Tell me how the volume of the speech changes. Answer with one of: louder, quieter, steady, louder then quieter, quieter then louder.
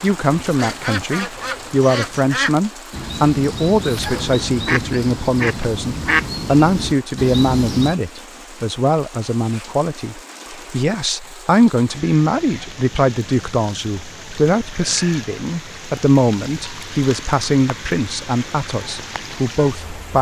steady.